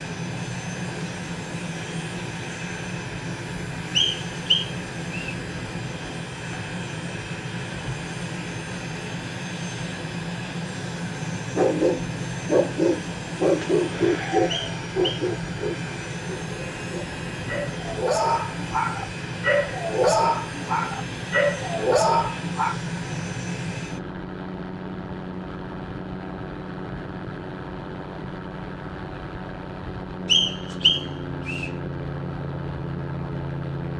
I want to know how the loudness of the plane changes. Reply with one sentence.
The volume of the plane stays about the same.